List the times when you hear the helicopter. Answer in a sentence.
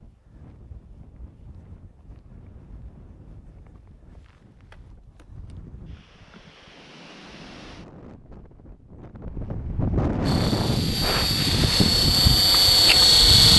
You can hear the helicopter from 10.2 to 13.5 s.